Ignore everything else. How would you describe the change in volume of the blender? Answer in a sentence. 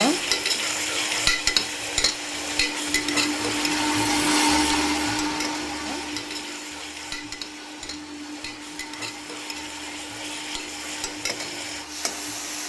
The volume of the blender goes up, then down.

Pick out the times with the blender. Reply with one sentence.
You can hear the blender from 0.1 to 12.6 s.